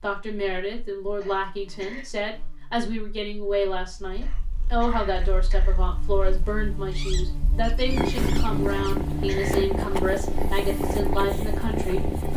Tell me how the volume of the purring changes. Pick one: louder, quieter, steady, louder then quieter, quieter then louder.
louder.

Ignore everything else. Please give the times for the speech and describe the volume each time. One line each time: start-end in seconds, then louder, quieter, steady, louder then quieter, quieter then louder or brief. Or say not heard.
0.0-12.3 steady.